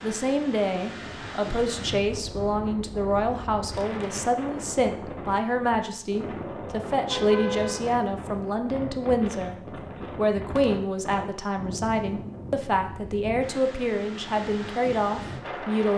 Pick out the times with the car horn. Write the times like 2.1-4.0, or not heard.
7.0-7.8.